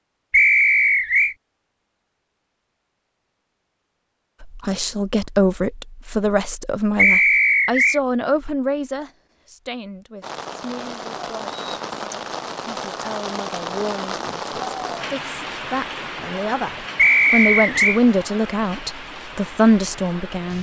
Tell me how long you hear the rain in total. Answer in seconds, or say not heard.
10 s.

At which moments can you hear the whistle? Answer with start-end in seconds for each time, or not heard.
0.3-1.4, 7.0-8.0, 16.9-18.0.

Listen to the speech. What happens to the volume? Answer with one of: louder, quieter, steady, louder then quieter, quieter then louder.
quieter then louder.